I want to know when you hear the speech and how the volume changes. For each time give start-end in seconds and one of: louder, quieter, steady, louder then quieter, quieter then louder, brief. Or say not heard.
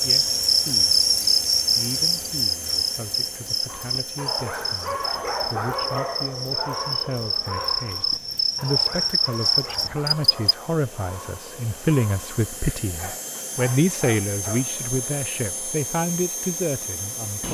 0.0-1.1 brief
1.8-17.4 louder.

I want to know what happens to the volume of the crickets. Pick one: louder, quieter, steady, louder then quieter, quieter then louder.
quieter then louder.